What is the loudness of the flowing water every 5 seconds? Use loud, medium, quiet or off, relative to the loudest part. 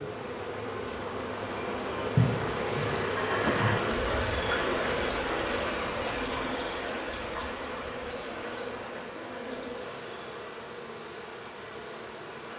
loud, loud, quiet.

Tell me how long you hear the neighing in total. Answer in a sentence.
You can hear the neighing for 2 seconds altogether.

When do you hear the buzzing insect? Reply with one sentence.
The buzzing insect can be heard from 0.0 to 12.5 s.